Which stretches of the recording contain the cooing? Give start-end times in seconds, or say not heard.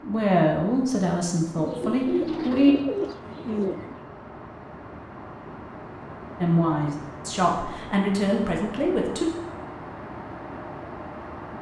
1.6-4.0.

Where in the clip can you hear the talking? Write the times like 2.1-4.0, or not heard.
0.0-2.8, 6.4-9.2.